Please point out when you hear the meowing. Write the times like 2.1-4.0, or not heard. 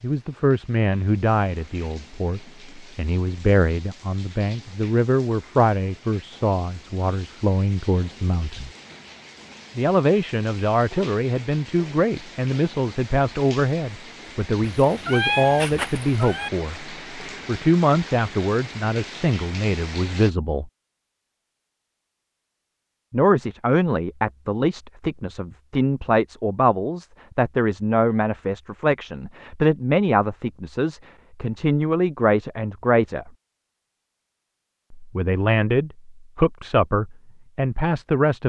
14.8-16.5.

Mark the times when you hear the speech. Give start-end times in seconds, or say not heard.
0.0-8.7, 9.8-20.7, 23.1-33.3, 35.0-38.4.